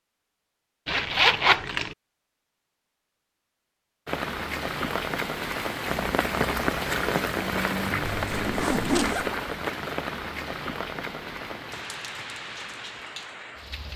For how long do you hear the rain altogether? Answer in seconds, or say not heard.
10 s.